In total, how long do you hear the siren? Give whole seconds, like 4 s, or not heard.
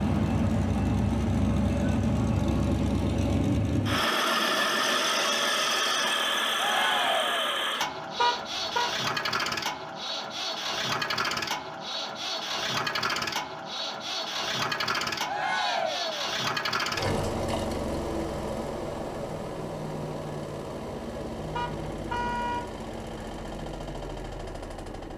not heard.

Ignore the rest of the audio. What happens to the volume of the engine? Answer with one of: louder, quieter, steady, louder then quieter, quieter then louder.
quieter.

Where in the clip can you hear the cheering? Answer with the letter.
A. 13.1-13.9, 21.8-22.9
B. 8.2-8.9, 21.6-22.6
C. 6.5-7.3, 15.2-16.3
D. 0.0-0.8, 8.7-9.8
C.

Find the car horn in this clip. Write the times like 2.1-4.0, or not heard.
8.2-8.9, 21.6-22.6.